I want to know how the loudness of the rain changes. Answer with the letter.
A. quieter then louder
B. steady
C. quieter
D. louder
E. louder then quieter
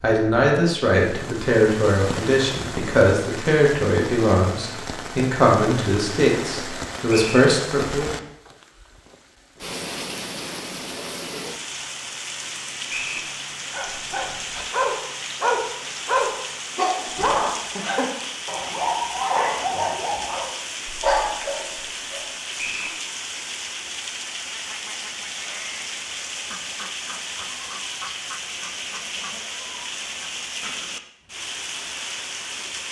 B.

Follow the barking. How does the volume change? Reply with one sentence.
The loudness of the barking stays about the same.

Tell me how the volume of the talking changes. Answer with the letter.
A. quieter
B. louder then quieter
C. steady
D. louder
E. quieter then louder
C.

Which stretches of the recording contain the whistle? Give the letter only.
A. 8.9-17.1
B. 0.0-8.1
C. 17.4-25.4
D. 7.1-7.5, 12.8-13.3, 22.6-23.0
D.